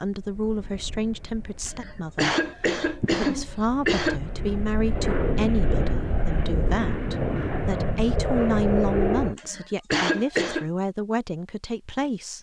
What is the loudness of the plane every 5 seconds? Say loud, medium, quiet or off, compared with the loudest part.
quiet, loud, off.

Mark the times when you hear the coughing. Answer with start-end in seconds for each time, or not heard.
1.6-4.2, 9.3-10.7.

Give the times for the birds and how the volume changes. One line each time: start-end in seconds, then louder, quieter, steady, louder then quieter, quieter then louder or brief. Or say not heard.
not heard.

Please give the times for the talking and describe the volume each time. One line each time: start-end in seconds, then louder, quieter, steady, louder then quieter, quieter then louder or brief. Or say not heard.
0.0-2.4 brief
3.0-12.3 steady.